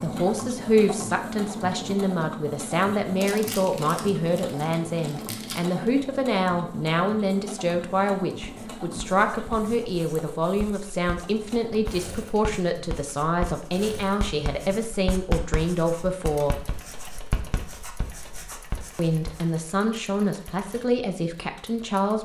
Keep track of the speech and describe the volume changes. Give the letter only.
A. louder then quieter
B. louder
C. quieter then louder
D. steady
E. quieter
D.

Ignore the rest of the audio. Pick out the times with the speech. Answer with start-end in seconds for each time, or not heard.
0.0-16.6, 18.9-22.1.